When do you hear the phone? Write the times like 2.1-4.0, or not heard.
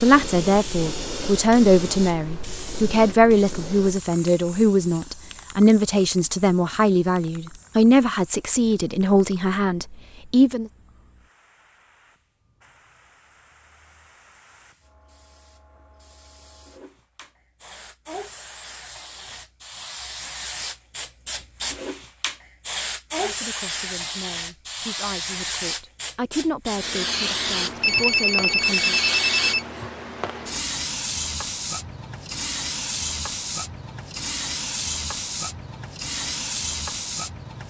27.8-29.6.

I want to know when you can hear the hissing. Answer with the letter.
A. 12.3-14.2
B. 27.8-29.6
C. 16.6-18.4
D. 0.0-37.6
D.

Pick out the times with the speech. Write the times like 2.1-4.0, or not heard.
0.0-10.7, 23.2-29.0.